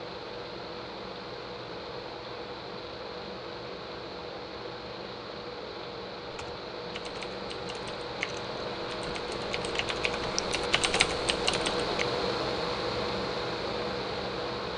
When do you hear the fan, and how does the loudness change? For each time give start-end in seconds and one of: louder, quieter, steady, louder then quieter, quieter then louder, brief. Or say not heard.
0.0-14.7 louder.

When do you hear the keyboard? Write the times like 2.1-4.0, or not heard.
6.3-11.9.